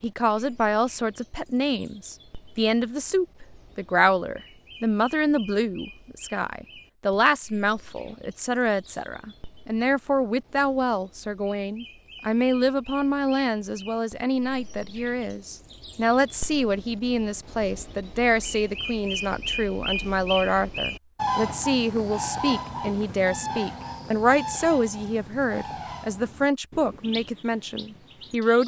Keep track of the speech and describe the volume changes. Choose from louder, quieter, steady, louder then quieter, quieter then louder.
steady.